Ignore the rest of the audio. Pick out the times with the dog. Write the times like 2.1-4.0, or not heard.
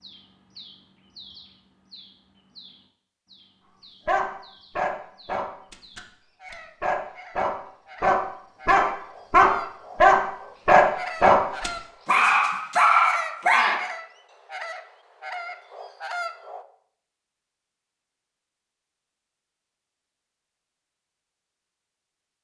4.0-13.8.